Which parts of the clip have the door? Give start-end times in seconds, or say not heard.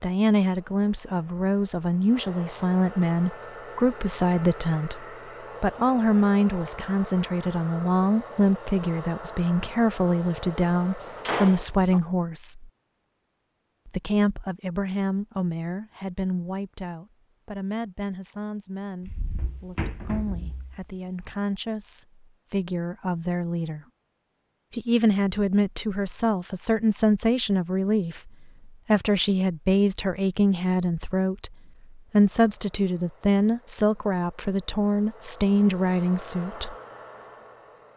11.0-12.0, 19.1-20.9.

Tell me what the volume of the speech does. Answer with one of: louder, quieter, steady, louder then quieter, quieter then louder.
quieter then louder.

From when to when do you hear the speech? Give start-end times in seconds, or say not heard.
0.0-12.7, 13.8-23.9, 24.7-36.8.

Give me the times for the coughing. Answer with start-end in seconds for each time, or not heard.
not heard.